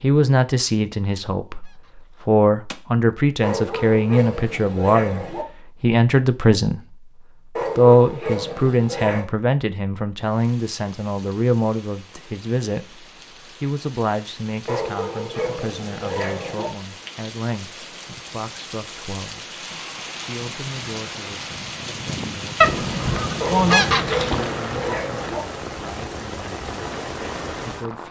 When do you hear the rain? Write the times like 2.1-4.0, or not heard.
10.2-28.0.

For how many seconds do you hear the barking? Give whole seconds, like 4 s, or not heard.
8 s.